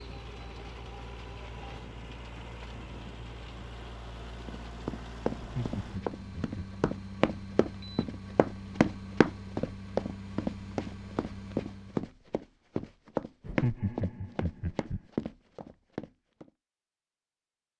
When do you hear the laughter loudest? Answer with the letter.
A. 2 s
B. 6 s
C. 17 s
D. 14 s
D.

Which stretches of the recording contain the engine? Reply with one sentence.
You can hear the engine from 0.0 to 12.2 s.